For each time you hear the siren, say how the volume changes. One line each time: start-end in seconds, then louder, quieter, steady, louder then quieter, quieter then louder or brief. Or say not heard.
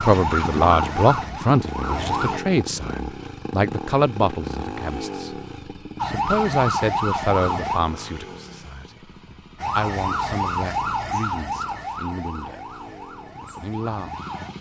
0.0-2.4 brief
6.0-7.8 brief
9.6-14.5 quieter.